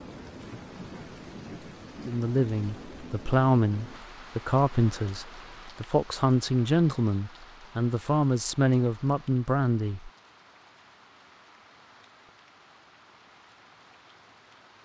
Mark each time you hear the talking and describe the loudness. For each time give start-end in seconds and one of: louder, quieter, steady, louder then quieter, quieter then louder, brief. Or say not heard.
2.0-10.1 steady.